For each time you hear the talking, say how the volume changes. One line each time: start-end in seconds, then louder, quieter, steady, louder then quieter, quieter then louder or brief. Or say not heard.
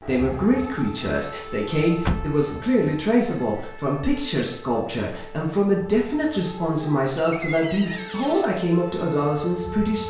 0.1-10.0 steady.